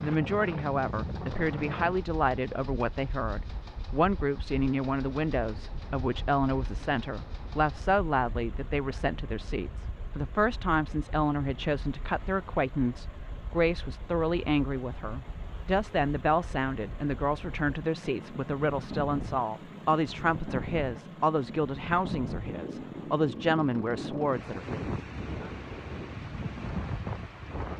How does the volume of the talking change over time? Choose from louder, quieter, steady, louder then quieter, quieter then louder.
steady.